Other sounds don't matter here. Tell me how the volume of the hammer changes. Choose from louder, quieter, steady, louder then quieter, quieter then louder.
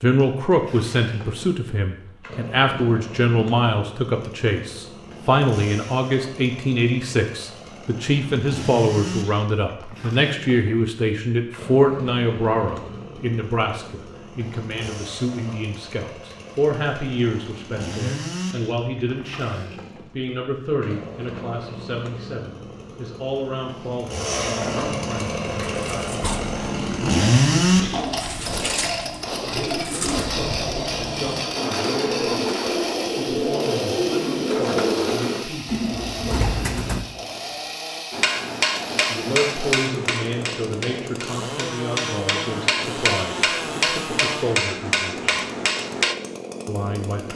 quieter then louder.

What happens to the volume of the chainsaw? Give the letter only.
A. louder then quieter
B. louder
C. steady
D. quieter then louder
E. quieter
A.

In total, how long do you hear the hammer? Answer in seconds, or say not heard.
8 s.